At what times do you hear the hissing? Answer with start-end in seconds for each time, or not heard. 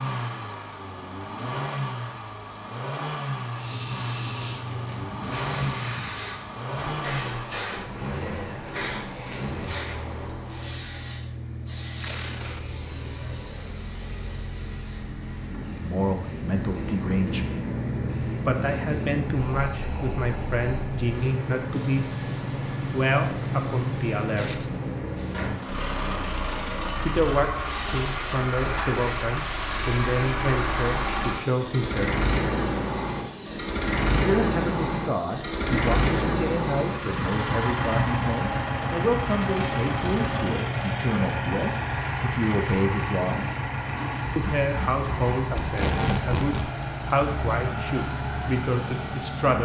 3.5-49.5.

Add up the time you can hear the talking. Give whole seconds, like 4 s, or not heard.
27 s.